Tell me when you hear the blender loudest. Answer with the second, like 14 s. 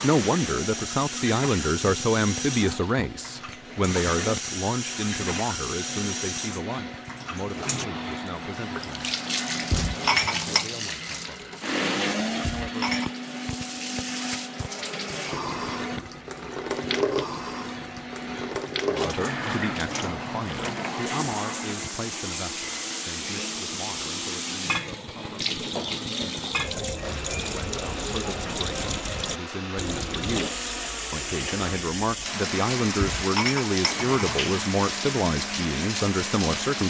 12 s.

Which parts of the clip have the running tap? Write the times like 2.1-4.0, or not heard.
0.0-36.8.